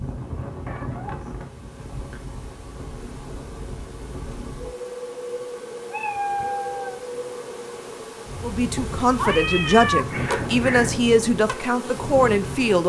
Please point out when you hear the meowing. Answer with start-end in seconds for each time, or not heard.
0.1-2.2, 5.9-7.0, 9.2-10.9.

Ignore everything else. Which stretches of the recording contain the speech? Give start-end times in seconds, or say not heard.
8.4-12.8.